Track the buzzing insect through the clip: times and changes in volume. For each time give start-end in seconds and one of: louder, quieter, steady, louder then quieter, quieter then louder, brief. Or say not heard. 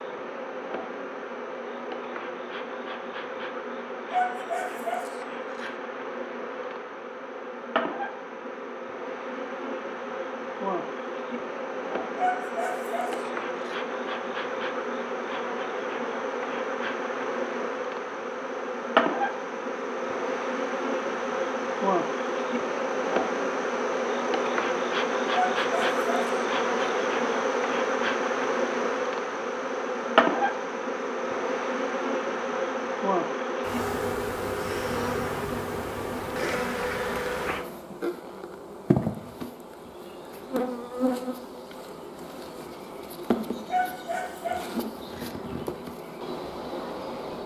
0.0-47.4 louder then quieter.